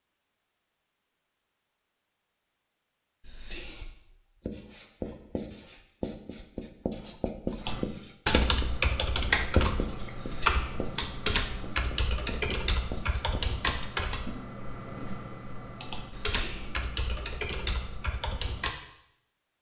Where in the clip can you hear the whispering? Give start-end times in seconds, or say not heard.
3.2-3.9, 10.2-10.8, 16.1-16.8.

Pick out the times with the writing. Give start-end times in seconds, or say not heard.
3.4-13.8.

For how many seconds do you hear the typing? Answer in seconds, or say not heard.
11 s.